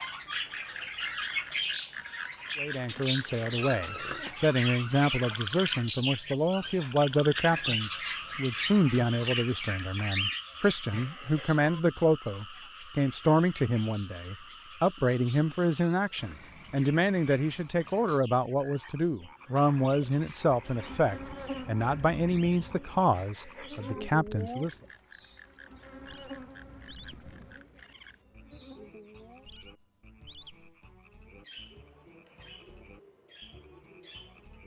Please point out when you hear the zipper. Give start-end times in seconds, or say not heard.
not heard.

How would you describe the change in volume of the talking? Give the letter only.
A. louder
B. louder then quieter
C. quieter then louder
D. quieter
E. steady
E.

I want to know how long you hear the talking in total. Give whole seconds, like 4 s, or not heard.
22 s.